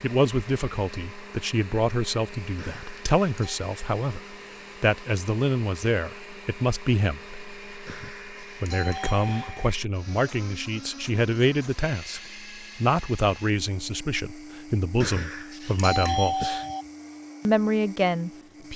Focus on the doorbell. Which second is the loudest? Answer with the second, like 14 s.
16 s.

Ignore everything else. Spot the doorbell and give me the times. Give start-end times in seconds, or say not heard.
2.5-3.5, 7.8-9.7, 15.0-16.9.